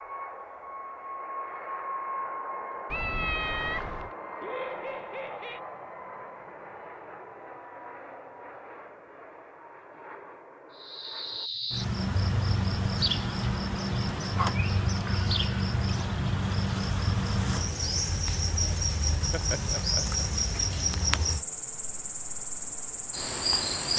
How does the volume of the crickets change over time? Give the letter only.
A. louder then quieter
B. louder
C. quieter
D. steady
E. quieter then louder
D.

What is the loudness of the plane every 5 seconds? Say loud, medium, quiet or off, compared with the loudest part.
loud, medium, medium, off, off.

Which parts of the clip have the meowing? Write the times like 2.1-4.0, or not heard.
2.9-4.1.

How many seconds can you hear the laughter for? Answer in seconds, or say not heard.
2 s.